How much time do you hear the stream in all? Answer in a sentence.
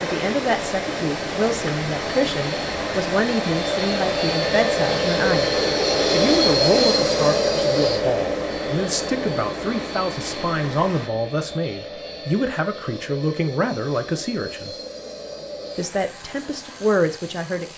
The stream can be heard for 11 seconds in total.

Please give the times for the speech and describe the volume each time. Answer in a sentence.
You can hear the speech from 0.0 to 14.8 s, at a steady volume; and briefly from 15.8 to 17.7 s.